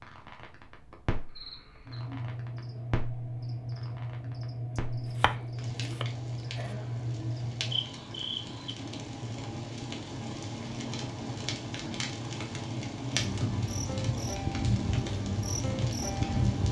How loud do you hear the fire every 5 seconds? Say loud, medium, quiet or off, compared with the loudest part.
medium, medium, loud, loud.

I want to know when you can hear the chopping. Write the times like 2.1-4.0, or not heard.
4.8-6.0.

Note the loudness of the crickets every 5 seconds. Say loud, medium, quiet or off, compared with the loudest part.
medium, loud, loud, loud.